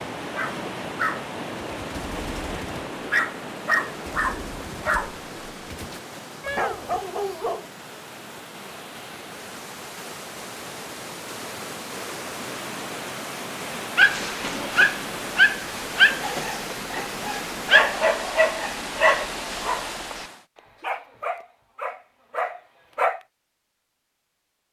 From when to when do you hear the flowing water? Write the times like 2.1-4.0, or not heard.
0.0-20.4.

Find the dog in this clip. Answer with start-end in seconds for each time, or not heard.
0.3-7.7, 13.9-23.2.